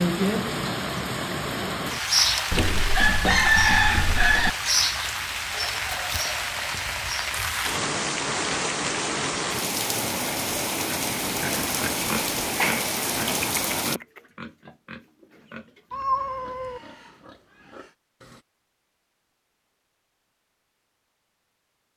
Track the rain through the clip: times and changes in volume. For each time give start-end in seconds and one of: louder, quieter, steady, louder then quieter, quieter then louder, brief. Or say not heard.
0.0-14.0 steady.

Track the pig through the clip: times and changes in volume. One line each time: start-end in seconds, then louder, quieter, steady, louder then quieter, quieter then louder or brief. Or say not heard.
10.8-18.4 quieter.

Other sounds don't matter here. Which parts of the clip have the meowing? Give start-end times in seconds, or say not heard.
15.9-16.8.